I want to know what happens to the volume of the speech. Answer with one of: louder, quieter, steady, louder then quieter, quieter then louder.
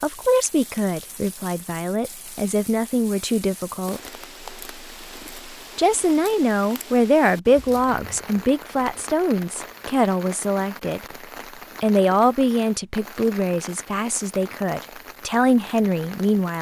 steady.